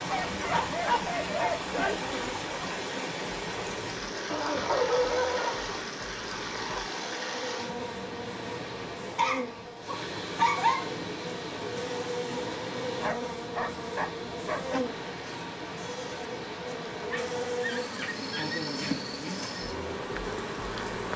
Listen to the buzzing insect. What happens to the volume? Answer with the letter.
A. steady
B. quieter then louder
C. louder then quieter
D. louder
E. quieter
D.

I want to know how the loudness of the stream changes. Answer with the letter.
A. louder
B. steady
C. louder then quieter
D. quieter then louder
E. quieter
E.